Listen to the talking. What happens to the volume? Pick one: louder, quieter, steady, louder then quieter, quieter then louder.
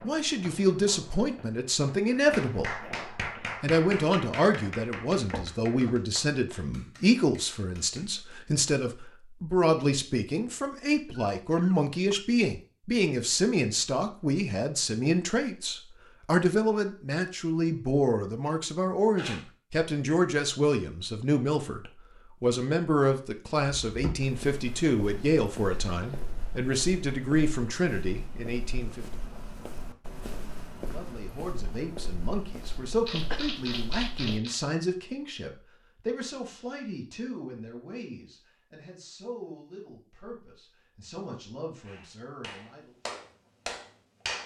quieter.